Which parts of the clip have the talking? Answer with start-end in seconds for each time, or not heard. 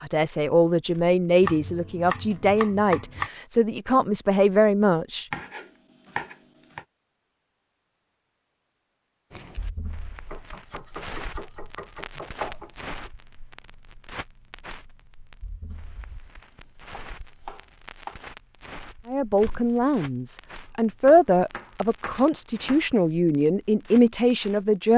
0.0-5.2, 19.1-24.9.